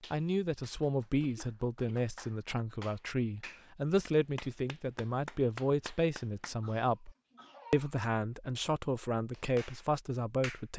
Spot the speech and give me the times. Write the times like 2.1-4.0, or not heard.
0.1-7.1, 7.7-10.7.